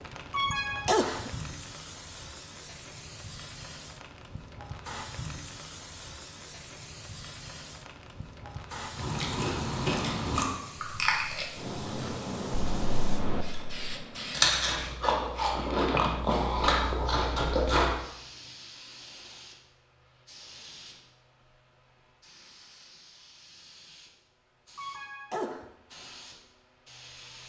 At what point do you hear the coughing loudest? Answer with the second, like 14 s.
1 s.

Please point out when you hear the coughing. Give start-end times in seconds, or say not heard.
0.3-1.4, 24.8-25.6.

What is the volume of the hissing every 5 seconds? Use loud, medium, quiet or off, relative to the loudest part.
medium, medium, loud, loud, quiet, quiet.